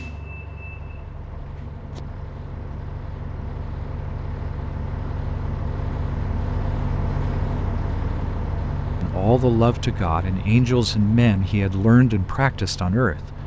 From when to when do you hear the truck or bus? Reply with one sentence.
You can hear the truck or bus from 0.0 to 13.4 s.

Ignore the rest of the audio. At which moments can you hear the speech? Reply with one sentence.
The speech can be heard from 9.0 to 13.3 s.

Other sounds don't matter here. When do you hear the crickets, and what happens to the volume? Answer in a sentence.
The crickets can't be heard in this clip.